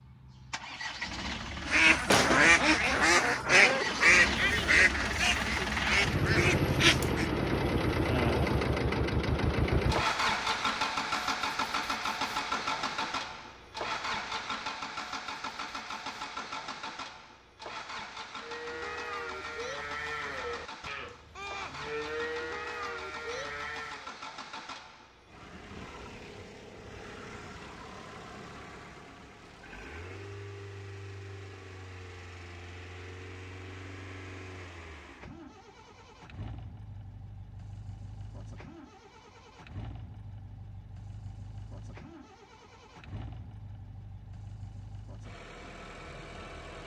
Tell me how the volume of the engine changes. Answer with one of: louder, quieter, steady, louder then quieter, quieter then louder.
quieter.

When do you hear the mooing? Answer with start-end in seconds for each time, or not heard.
18.4-24.1.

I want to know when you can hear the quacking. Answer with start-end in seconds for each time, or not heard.
1.6-7.3.